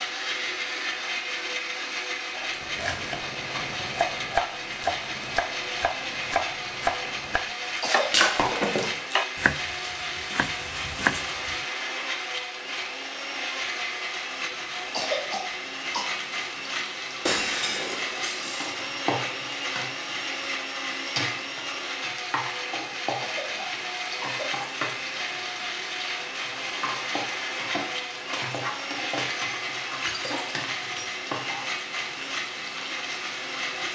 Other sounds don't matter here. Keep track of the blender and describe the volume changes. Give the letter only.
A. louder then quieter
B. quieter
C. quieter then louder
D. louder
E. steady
E.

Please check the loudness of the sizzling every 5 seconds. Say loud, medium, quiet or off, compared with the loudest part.
off, off, off, loud, loud, loud, loud.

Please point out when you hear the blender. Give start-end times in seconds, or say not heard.
0.0-33.9.